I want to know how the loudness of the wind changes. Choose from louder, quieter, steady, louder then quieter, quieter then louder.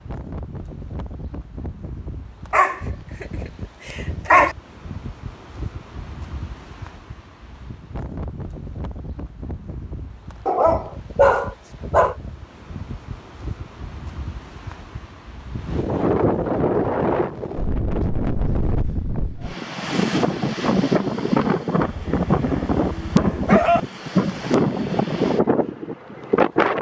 louder.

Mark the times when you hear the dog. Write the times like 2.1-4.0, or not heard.
2.5-3.2, 3.9-4.5, 10.4-12.2, 21.8-23.8.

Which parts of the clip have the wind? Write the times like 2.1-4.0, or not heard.
0.0-26.7.